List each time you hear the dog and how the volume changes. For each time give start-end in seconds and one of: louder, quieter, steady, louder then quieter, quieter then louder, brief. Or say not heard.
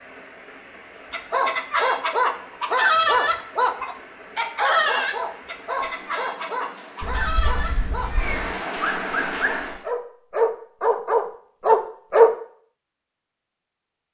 1.1-12.3 quieter then louder.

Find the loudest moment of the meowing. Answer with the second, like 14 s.
8 s.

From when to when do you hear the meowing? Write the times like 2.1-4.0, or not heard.
7.0-8.6.